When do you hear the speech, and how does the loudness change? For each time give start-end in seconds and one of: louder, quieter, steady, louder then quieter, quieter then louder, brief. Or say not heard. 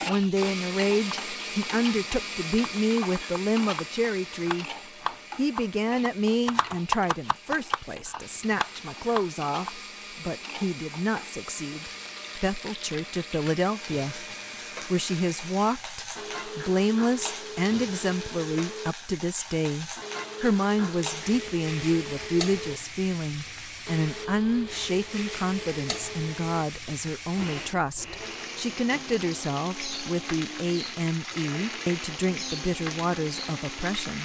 0.1-4.7 steady
5.3-34.2 steady.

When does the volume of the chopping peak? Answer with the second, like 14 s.
7 s.